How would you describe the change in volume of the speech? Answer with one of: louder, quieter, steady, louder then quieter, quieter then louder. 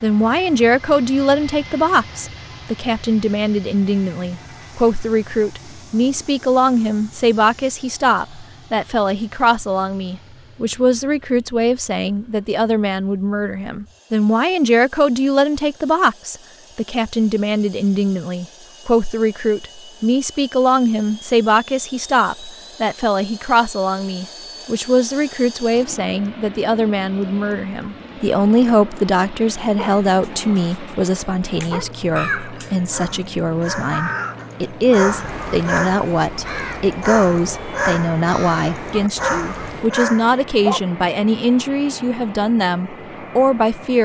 steady.